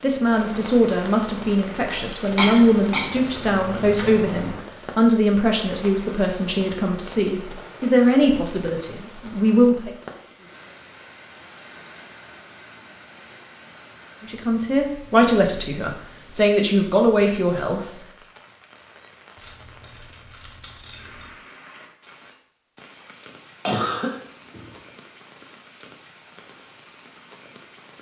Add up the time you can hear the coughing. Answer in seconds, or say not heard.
2 s.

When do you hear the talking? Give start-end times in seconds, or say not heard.
0.0-9.9, 14.2-18.0.